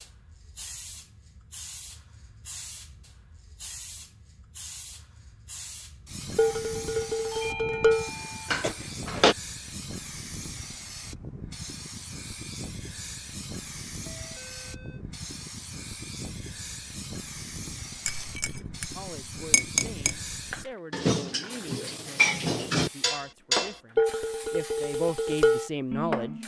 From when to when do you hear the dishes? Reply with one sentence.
The dishes can be heard from 6.3 to 9.3 s, from 18.1 to 20.1 s and from 20.9 to 26.4 s.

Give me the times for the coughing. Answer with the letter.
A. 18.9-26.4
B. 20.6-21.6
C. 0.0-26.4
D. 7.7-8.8
D.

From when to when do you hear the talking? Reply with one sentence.
You can hear the talking from 18.9 to 26.4 s.